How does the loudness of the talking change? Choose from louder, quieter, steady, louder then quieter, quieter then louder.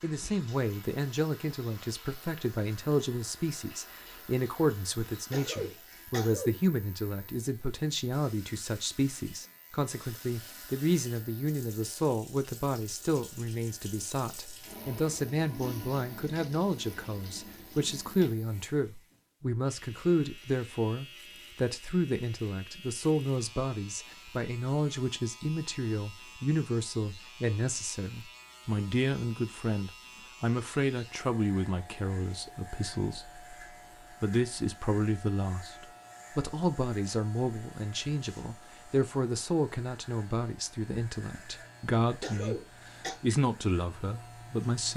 steady.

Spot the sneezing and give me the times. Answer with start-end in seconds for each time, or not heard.
5.3-6.6, 42.2-43.1.